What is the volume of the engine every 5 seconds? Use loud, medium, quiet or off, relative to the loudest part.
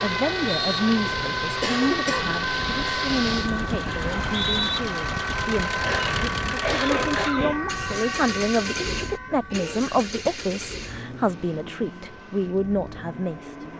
loud, loud, medium.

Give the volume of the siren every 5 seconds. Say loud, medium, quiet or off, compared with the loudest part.
loud, loud, quiet.